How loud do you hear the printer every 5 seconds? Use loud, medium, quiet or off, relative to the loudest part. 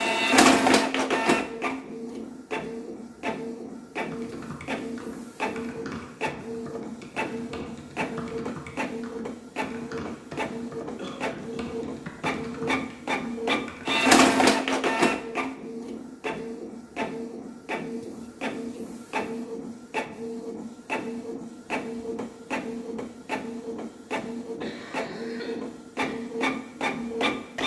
loud, medium, loud, medium, medium, medium.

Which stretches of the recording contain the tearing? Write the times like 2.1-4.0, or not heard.
not heard.